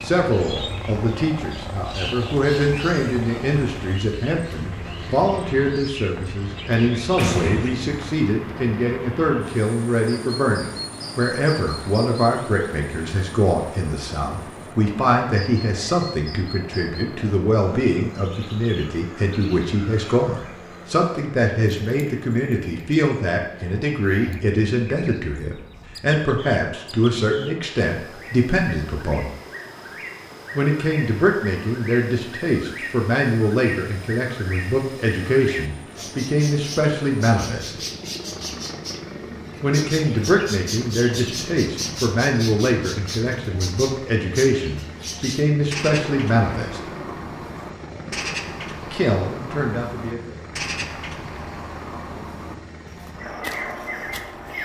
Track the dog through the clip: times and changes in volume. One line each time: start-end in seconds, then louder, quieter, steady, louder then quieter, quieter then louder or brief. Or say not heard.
not heard.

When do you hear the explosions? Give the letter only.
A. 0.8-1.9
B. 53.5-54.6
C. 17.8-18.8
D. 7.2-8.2
D.